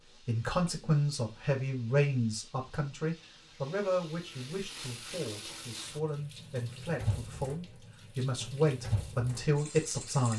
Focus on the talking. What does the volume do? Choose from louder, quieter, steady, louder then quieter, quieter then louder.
quieter then louder.